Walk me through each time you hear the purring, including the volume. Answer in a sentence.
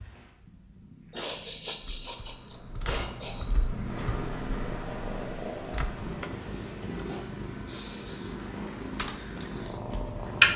The purring can be heard from 0.0 to 10.5 s, getting louder.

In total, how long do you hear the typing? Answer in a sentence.
You can hear the typing for 7 seconds altogether.